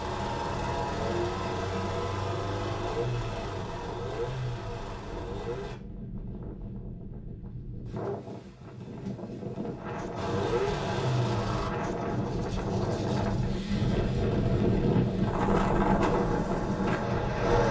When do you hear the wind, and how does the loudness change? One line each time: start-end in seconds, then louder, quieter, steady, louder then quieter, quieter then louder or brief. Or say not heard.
0.0-17.6 louder.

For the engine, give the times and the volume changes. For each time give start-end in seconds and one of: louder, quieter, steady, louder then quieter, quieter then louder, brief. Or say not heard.
0.0-5.8 quieter
10.2-11.7 brief
16.0-17.6 brief.